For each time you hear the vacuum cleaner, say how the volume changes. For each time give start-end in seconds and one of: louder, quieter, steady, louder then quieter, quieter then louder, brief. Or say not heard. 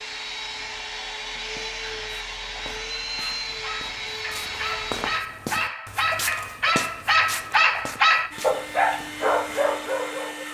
0.0-5.2 steady
8.3-10.4 brief.